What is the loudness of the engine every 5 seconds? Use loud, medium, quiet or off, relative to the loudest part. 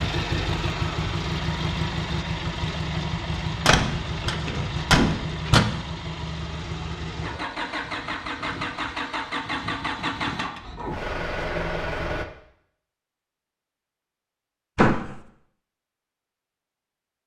loud, loud, loud, off.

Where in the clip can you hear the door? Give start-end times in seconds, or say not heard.
3.6-5.7, 14.8-15.2.